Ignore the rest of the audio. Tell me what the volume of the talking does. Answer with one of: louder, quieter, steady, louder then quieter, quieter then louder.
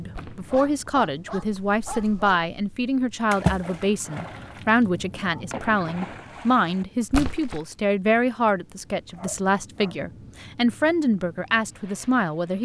steady.